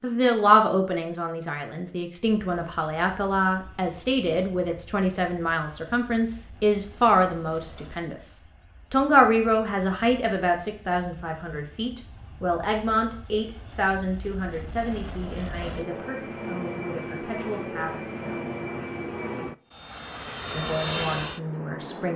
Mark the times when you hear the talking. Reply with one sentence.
The talking can be heard from 0.0 to 18.4 s and from 20.5 to 22.1 s.